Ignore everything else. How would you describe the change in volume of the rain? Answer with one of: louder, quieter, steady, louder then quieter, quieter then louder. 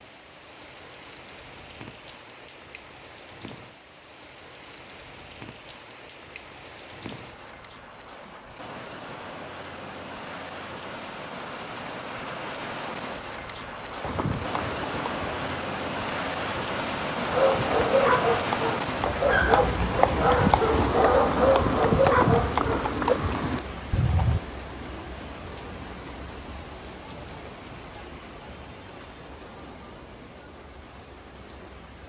louder then quieter.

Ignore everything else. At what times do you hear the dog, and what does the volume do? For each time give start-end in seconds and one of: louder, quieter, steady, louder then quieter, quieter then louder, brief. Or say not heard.
17.2-23.2 steady.